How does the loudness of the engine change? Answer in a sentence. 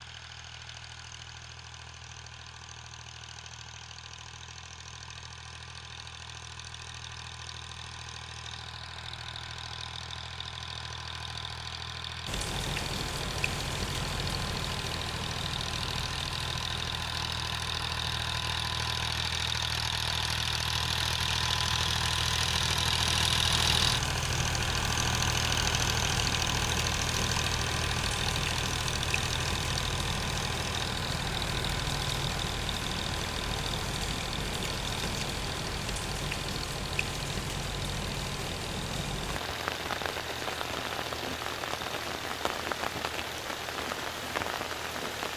The loudness of the engine goes up, then down.